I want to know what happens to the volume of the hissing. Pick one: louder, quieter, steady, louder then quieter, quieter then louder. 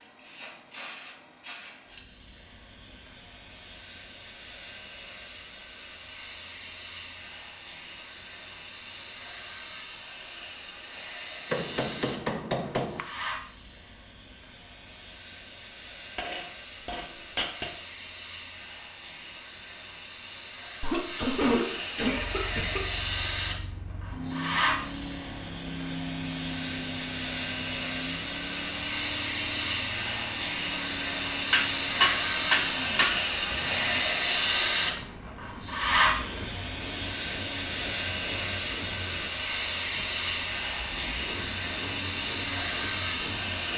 louder.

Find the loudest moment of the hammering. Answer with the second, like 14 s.
32 s.